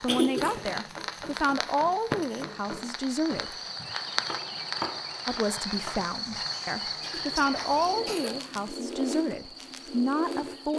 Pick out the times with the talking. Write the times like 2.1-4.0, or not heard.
0.0-3.5, 5.2-10.7.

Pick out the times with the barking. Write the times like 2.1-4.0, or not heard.
not heard.